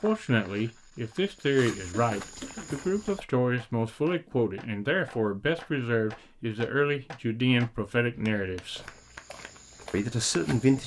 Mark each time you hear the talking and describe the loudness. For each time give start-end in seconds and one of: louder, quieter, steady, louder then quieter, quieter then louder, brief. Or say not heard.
0.0-8.9 steady
9.9-10.8 brief.